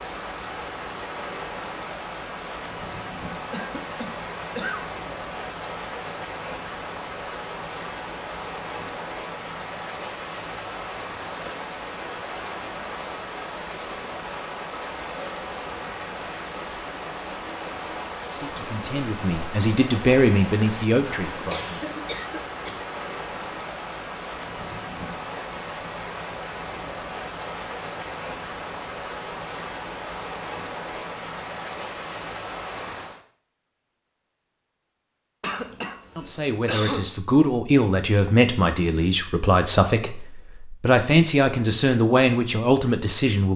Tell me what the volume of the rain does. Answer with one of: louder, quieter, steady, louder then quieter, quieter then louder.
steady.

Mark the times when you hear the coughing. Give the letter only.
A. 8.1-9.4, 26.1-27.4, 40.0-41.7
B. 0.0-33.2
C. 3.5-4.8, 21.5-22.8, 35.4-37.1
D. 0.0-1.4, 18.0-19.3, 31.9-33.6
C.